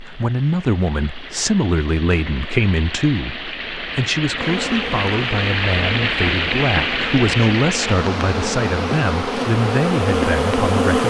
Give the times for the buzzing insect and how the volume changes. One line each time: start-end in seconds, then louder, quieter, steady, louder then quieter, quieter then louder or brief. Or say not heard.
4.3-11.0 louder.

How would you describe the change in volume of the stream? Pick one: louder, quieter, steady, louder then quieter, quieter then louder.
louder then quieter.